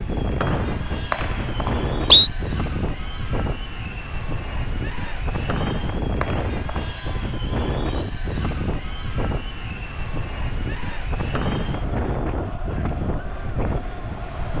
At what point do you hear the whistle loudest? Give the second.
2 s.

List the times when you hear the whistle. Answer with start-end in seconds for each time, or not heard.
0.4-2.3, 5.5-7.0, 11.3-11.9.